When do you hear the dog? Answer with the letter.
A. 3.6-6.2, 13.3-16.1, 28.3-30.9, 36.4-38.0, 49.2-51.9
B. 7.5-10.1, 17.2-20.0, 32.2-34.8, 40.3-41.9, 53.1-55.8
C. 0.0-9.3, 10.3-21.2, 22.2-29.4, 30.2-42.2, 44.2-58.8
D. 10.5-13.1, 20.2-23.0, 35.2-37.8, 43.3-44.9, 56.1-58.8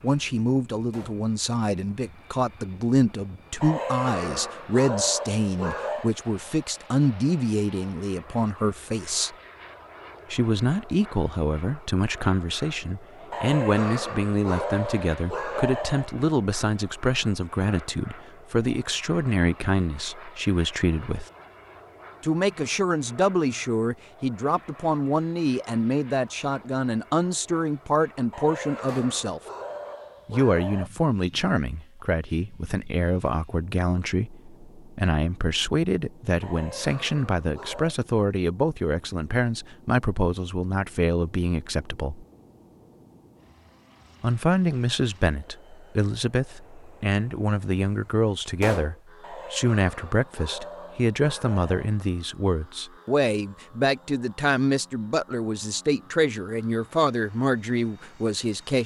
A.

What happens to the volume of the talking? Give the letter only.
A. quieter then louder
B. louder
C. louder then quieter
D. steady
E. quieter
D.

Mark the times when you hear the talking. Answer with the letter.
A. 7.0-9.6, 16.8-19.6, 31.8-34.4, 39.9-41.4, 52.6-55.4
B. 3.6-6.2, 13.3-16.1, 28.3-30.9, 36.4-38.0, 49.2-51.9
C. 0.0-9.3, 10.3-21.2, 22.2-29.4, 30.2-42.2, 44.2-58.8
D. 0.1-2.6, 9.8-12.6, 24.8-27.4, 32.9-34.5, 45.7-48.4
C.